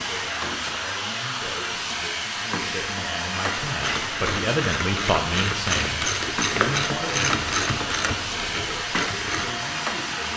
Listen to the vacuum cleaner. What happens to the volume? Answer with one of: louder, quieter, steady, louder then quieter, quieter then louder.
steady.